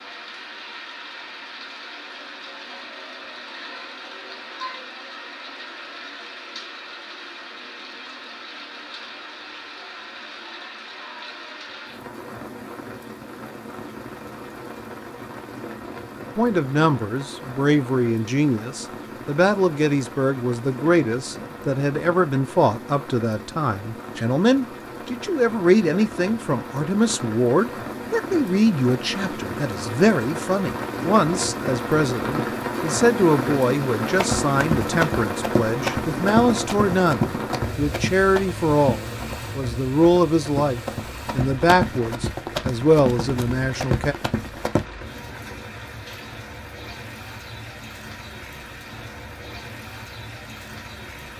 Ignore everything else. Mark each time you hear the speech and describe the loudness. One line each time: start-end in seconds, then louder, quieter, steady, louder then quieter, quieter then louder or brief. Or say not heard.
16.4-44.1 steady.